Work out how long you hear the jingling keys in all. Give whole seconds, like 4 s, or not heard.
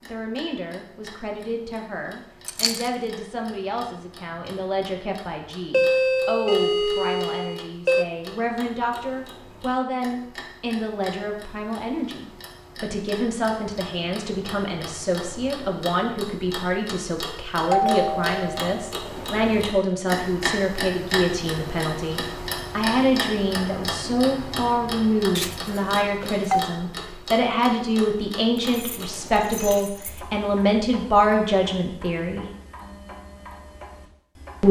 2 s.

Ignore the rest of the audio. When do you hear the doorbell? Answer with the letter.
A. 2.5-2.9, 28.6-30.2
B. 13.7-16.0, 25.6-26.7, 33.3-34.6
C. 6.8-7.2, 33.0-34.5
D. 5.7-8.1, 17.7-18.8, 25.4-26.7
D.